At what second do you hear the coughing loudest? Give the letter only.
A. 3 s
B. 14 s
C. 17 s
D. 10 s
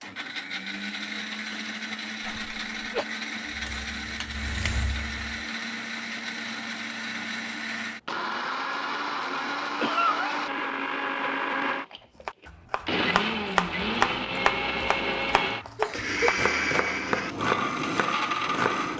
D.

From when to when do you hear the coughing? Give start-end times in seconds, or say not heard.
2.2-3.0, 9.8-10.7, 15.8-16.2.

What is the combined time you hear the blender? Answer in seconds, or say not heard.
19 s.